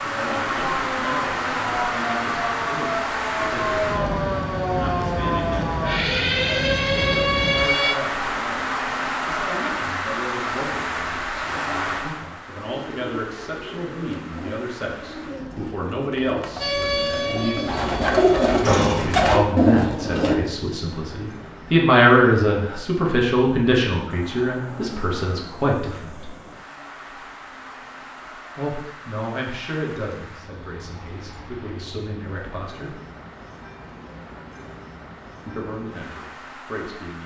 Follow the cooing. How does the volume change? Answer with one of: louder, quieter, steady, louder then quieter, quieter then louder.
louder.